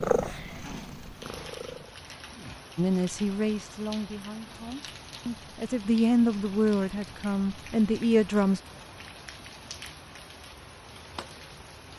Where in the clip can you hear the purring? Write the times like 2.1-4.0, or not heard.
0.0-1.9.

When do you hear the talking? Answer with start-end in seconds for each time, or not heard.
2.8-8.6.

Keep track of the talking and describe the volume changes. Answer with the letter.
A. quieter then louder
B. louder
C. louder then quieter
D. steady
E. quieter
A.